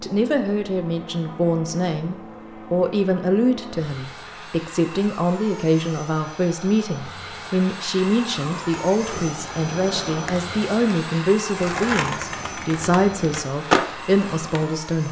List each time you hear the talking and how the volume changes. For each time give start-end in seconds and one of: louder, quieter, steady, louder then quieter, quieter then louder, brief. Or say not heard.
0.0-15.0 steady.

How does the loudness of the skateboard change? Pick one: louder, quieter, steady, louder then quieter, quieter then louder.
louder.